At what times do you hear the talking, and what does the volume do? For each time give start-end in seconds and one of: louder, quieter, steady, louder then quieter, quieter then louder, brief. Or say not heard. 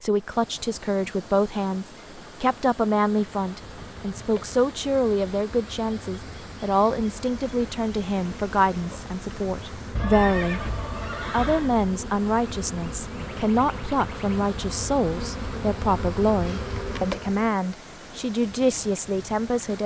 0.0-10.6 steady
11.3-19.8 steady.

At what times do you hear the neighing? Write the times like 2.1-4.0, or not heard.
9.9-11.8.